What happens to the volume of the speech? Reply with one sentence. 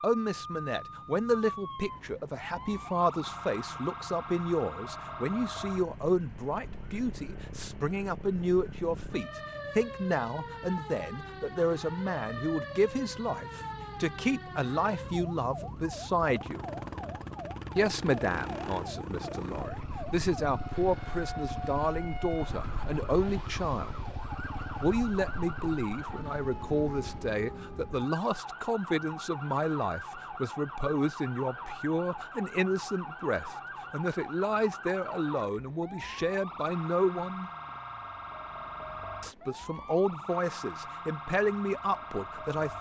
The loudness of the speech stays about the same.